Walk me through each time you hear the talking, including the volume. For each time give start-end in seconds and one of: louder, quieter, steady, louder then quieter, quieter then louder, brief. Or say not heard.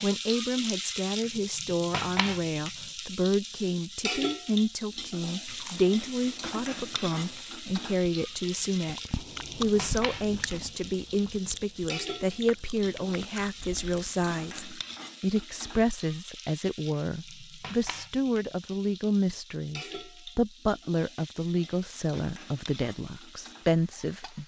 0.0-9.0 steady
9.6-24.4 steady.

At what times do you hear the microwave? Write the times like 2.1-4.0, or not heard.
not heard.